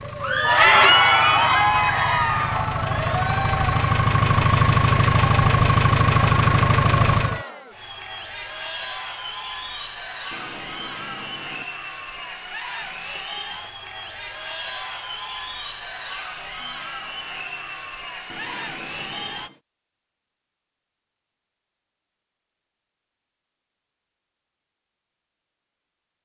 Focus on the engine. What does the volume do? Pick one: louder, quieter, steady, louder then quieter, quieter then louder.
louder.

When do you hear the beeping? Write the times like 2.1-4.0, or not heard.
1.1-2.0, 10.3-11.7, 18.3-19.6.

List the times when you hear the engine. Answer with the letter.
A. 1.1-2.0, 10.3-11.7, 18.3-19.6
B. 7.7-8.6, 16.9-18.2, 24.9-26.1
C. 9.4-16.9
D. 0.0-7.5
D.